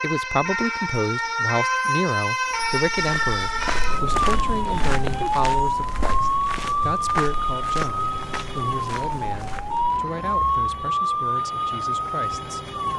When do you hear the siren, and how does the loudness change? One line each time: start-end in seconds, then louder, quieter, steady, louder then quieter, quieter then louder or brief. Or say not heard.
0.0-12.9 steady.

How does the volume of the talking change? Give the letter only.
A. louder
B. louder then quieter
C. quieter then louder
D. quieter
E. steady
D.